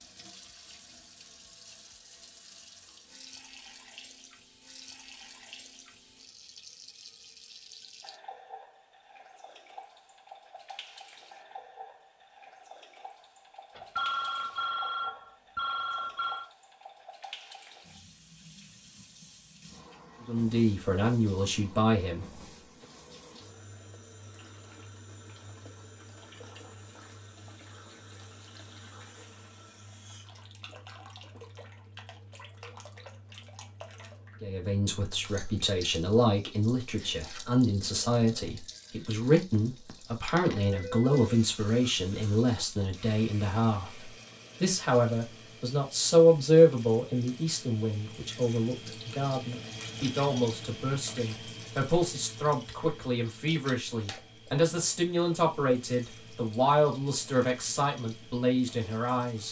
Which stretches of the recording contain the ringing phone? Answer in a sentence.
The ringing phone can be heard from 13.8 to 16.5 s and from 40.6 to 42.0 s.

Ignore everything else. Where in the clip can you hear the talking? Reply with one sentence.
The talking can be heard from 20.2 to 22.2 s and from 34.4 to 59.4 s.